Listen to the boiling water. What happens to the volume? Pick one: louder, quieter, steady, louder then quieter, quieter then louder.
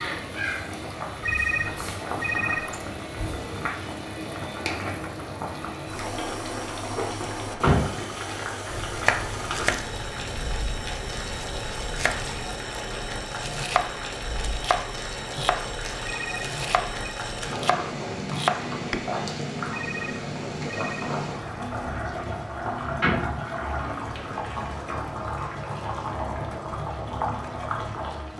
steady.